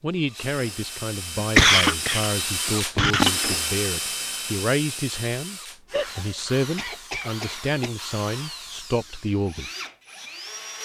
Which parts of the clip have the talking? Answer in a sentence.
The talking can be heard from 0.0 to 9.7 s.